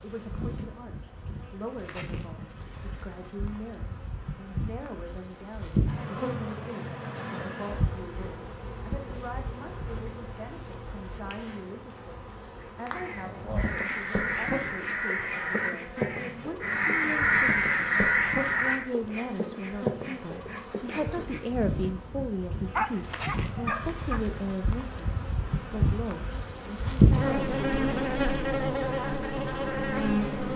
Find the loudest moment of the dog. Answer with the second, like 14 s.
23 s.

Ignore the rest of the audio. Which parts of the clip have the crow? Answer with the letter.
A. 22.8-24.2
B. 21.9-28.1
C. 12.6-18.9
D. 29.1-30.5
C.